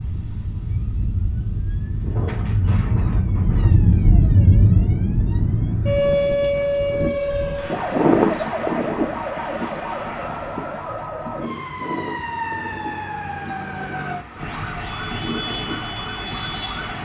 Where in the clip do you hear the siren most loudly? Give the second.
4 s.